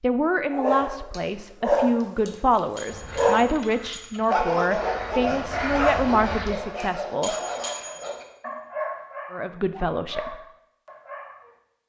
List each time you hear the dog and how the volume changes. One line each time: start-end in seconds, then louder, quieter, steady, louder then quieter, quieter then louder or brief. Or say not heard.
0.5-11.6 quieter.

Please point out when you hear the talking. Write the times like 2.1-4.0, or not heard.
0.0-7.3, 9.3-10.3.